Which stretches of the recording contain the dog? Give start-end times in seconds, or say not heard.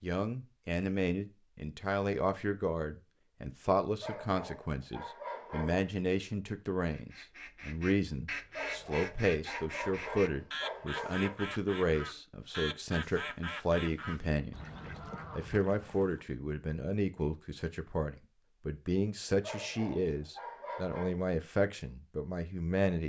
4.0-5.8, 8.6-11.4, 19.4-21.2.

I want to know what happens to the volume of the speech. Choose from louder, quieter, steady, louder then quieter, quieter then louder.
steady.